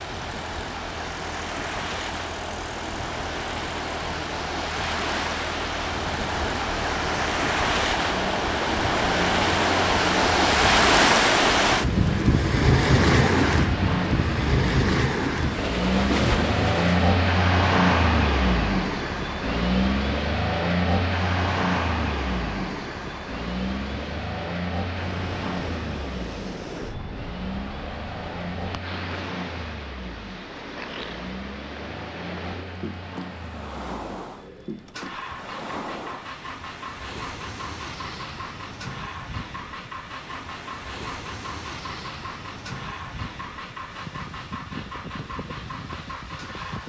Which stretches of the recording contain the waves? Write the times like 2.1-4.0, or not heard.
0.0-46.8.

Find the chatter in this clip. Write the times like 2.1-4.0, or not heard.
not heard.